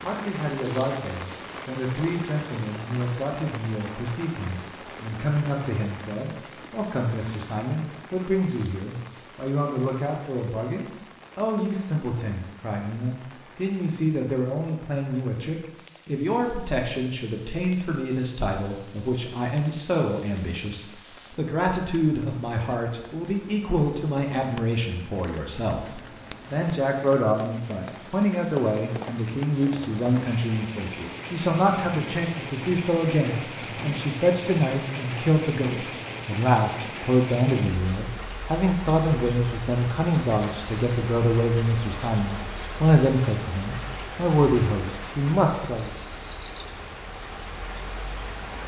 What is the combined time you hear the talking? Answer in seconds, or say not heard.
46 s.